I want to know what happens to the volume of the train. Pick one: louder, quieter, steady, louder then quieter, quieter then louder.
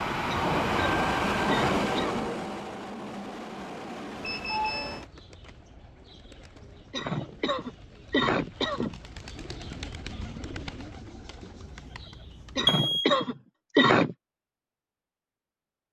quieter.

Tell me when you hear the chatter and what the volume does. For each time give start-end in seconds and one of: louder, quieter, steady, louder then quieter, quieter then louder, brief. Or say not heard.
not heard.